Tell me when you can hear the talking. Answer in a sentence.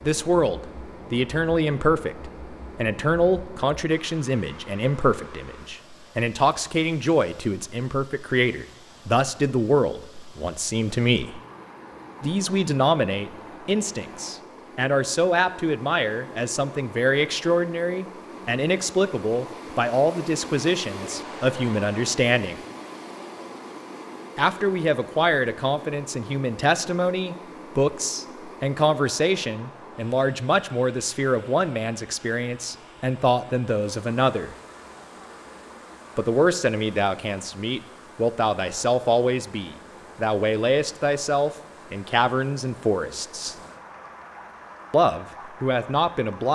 You can hear the talking from 0.0 to 11.4 s, from 12.2 to 22.6 s, from 24.4 to 34.5 s, from 36.1 to 43.5 s and from 44.9 to 46.5 s.